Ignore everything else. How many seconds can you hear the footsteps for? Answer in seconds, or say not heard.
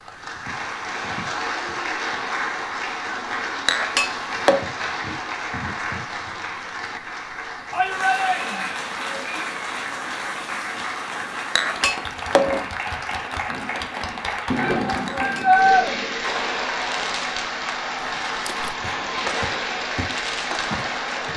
3 s.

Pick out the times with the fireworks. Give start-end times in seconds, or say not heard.
13.4-21.3.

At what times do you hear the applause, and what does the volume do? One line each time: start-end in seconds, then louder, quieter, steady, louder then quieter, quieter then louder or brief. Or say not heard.
0.0-21.3 steady.